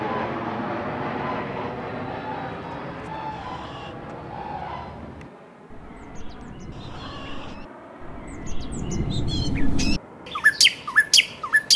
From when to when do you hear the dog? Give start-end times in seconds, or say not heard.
not heard.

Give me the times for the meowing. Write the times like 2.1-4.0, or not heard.
3.3-4.0, 6.7-7.6.